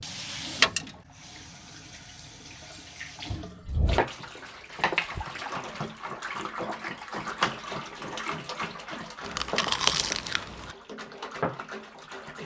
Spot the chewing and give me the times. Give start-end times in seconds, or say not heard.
9.2-10.8.